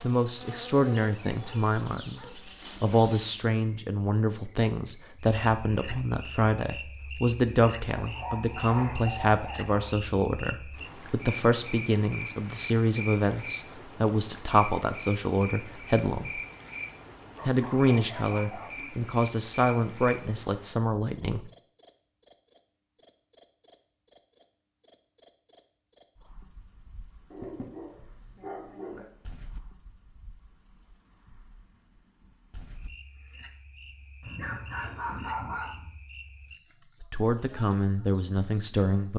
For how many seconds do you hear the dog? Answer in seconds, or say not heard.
9 s.